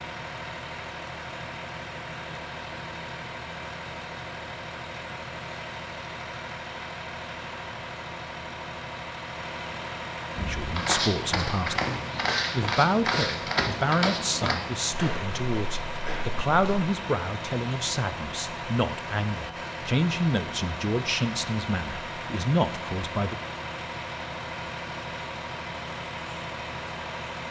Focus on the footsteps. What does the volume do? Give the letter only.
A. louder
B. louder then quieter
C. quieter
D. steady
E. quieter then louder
C.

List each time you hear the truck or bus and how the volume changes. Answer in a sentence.
The truck or bus can be heard from 0.0 to 27.4 s, at a steady volume.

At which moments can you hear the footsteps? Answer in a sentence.
You can hear the footsteps from 10.3 to 16.9 s.